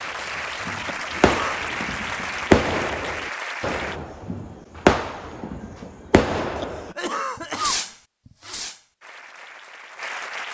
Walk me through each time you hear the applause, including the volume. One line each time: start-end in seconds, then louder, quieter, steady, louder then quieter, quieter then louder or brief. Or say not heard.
0.0-4.0 steady
9.0-10.4 brief.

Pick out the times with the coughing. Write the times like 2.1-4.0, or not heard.
0.8-1.6, 6.5-8.0.